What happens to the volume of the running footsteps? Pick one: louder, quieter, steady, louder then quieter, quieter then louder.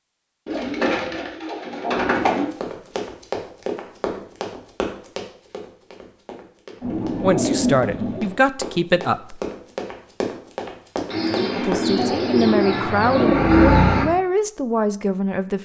quieter then louder.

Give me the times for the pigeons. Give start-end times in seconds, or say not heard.
0.5-2.5, 6.8-8.3, 11.1-14.1.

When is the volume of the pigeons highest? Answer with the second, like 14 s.
14 s.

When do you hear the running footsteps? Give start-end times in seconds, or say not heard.
2.1-11.9.